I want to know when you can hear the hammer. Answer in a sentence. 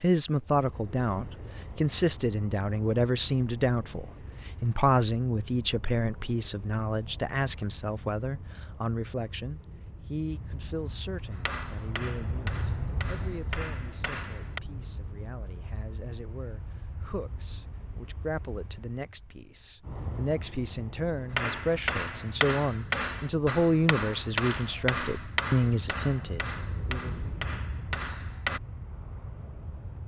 The hammer can be heard from 11.3 to 14.6 s and from 21.4 to 28.6 s.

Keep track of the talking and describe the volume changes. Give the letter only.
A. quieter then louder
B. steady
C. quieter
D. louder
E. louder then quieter
A.